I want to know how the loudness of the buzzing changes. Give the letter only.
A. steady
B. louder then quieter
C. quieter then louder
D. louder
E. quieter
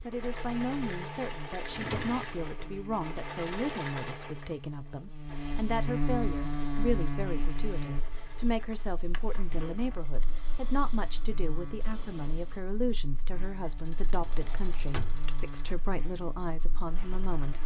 B.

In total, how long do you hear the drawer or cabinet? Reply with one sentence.
The drawer or cabinet can be heard for 3 seconds in total.